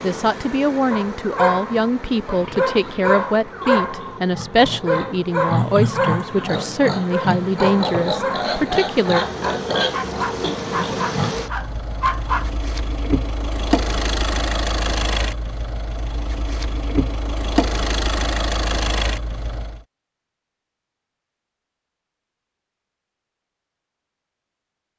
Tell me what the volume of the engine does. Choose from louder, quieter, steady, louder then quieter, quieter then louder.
louder.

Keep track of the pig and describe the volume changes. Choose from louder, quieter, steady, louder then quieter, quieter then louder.
louder.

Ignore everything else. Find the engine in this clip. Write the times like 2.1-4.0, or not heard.
0.0-19.9.